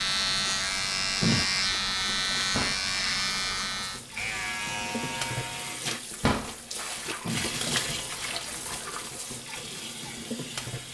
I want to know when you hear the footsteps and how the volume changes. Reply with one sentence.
The footsteps can't be heard in this clip.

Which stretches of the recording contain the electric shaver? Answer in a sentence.
The electric shaver can be heard from 0.0 to 5.8 s.